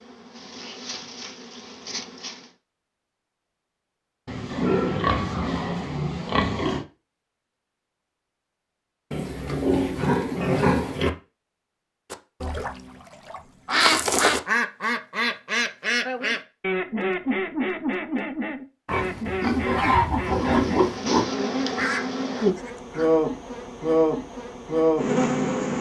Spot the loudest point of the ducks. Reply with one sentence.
The loudest moment of the ducks is at 14 seconds.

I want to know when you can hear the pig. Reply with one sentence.
The pig can be heard from 4.2 to 6.8 s, from 9.1 to 11.1 s and from 18.9 to 21.2 s.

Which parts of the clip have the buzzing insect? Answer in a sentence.
You can hear the buzzing insect from 0.0 to 2.5 s and from 20.2 to 25.7 s.